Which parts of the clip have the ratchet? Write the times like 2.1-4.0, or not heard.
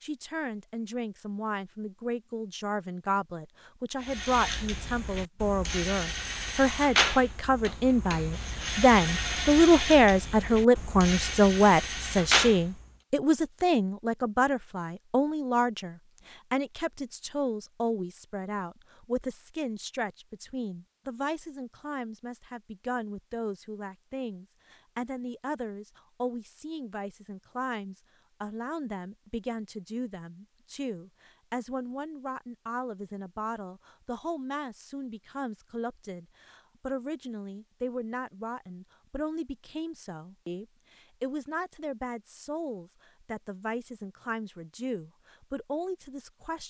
4.0-12.8.